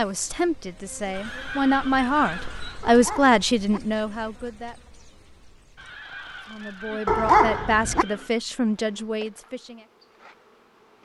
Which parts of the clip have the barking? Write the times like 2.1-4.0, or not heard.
2.8-3.8, 7.0-8.1.